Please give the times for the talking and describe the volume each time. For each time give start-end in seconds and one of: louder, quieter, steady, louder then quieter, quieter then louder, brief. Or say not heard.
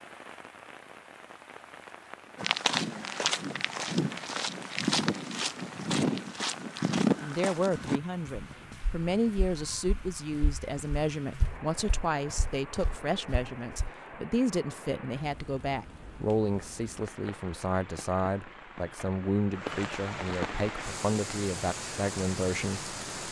7.2-22.9 steady.